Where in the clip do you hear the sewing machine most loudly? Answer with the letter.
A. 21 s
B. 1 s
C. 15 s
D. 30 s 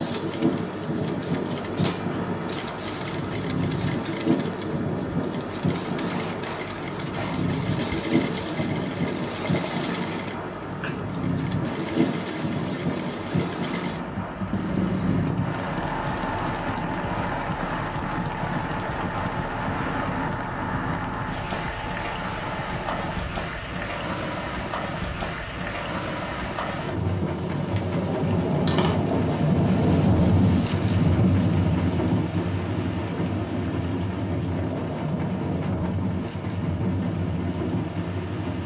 C.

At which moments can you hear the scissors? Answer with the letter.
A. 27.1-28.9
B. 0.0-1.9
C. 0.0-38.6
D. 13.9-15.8
A.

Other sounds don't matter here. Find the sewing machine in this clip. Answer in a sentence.
The sewing machine can be heard from 0.0 to 38.6 s.